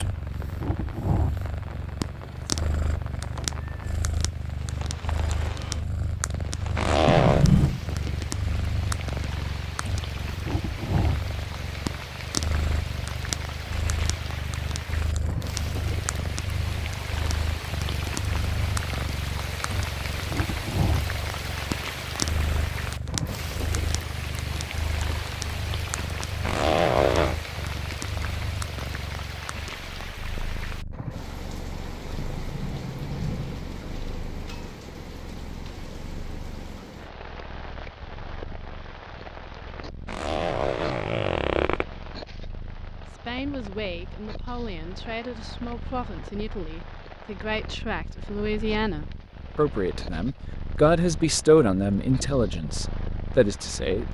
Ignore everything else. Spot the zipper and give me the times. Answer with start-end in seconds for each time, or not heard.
6.8-7.5, 26.4-27.4, 40.0-41.9.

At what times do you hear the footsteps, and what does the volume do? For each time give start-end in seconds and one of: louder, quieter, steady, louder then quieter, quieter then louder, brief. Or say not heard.
not heard.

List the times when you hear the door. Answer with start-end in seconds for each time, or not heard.
7.0-7.8, 32.1-33.6.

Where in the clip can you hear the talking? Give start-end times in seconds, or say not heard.
43.0-54.1.